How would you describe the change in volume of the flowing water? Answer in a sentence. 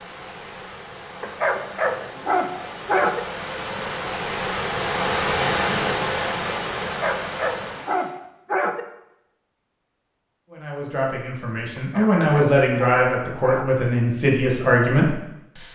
The volume of the flowing water goes up, then down.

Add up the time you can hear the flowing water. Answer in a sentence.
The flowing water can be heard for 8 seconds in total.